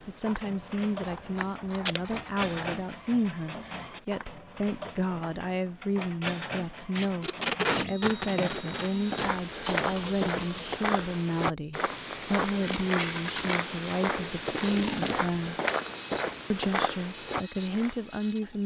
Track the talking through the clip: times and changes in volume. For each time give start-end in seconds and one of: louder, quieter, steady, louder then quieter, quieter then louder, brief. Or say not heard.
0.1-15.6 steady
16.5-18.6 brief.